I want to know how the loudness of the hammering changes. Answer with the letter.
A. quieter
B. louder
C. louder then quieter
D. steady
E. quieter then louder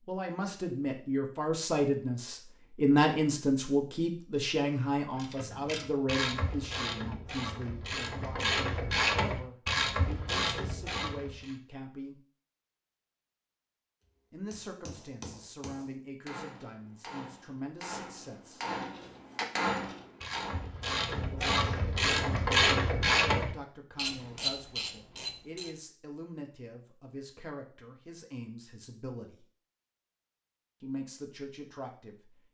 B.